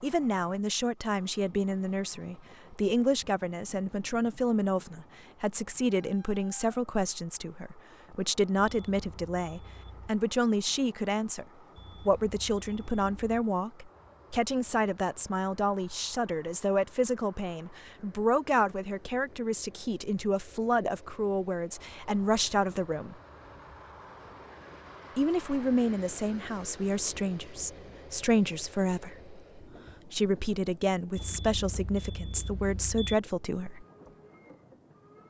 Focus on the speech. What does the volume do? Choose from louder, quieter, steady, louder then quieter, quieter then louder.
steady.